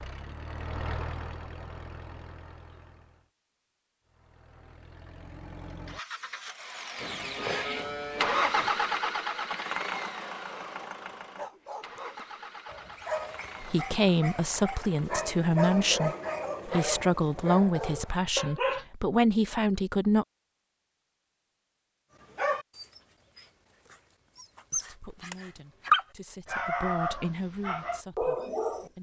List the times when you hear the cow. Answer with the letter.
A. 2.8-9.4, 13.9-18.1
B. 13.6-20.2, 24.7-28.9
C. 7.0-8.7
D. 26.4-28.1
C.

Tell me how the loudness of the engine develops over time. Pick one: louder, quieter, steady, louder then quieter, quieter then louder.
louder then quieter.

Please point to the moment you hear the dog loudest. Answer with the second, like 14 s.
26 s.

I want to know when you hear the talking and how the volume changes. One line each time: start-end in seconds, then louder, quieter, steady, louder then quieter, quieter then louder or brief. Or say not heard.
13.6-20.2 steady
24.7-28.9 louder then quieter.